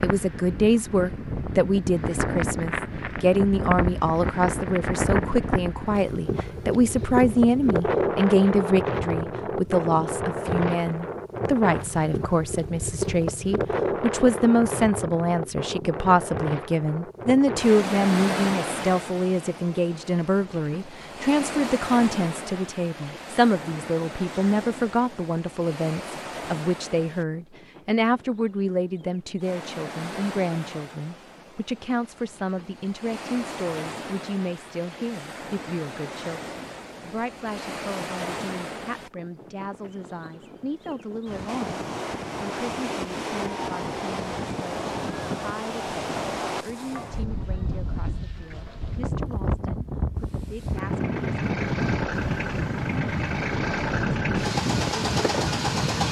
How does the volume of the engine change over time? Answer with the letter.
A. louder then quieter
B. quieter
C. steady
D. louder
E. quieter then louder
D.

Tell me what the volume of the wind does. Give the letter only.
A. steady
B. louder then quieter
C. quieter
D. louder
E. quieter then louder
E.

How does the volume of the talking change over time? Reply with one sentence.
The loudness of the talking goes down.